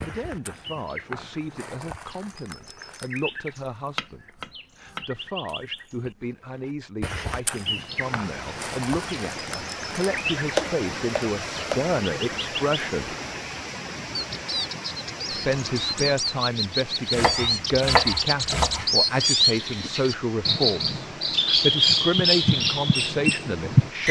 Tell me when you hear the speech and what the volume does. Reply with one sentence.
The speech can be heard from 0.0 to 13.2 s, getting louder; and from 15.3 to 24.0 s, at a steady volume.